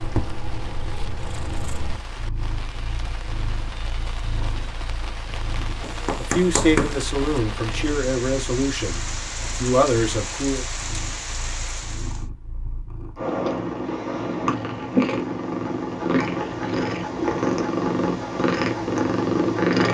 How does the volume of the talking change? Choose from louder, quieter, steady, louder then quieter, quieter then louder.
quieter then louder.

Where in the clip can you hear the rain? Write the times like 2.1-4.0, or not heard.
0.0-12.2.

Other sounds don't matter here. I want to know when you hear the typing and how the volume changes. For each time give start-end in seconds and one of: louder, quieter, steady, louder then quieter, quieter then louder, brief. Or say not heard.
not heard.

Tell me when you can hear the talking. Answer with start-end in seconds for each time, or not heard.
6.2-10.7.